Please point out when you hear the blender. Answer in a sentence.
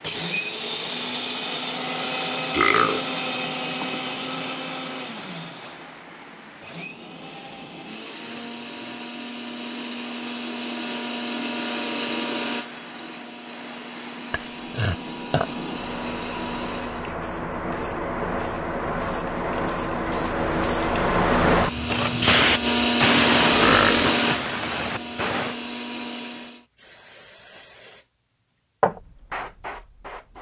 The blender can be heard from 0.0 to 17.1 s and from 21.5 to 26.6 s.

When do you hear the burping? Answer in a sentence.
The burping can be heard from 2.5 to 4.0 s, from 14.3 to 15.4 s and from 23.5 to 24.1 s.